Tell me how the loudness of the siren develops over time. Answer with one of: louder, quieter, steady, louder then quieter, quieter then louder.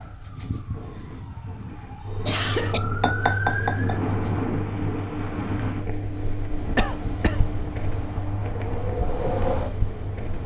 quieter then louder.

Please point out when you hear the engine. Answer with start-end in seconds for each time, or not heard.
2.0-10.4.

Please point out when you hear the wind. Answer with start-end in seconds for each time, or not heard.
0.0-10.4.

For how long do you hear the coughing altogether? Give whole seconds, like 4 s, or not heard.
3 s.